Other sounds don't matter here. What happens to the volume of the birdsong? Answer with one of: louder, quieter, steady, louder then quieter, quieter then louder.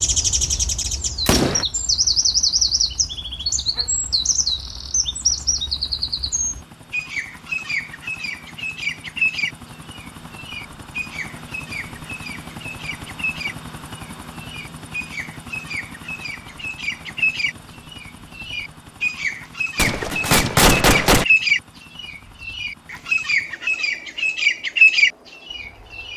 quieter then louder.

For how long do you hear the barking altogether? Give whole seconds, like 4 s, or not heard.
not heard.